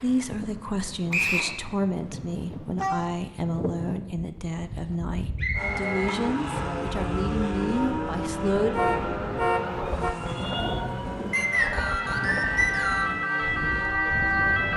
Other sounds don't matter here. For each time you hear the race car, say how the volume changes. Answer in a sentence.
You can hear the race car from 5.5 to 14.7 s, getting quieter.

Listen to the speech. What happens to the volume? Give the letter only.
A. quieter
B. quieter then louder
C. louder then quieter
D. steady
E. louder
D.